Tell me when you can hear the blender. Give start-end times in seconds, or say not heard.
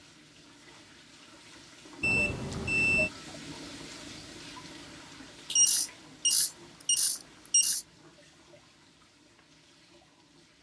not heard.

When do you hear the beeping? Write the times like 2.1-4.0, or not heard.
2.0-3.1, 5.5-7.8.